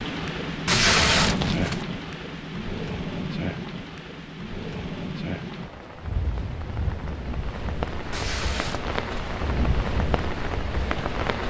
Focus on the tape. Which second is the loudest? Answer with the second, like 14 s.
1 s.